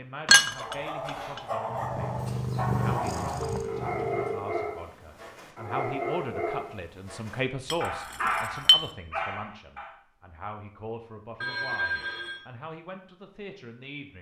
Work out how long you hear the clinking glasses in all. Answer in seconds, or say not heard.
2 s.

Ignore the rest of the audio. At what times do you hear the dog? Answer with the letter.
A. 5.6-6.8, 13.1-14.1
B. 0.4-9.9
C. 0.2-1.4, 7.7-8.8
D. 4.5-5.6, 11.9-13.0
B.